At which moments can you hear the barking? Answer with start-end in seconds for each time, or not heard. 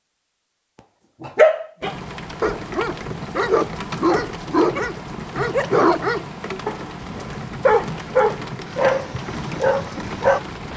1.2-10.4.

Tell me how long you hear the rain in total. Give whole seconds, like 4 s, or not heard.
9 s.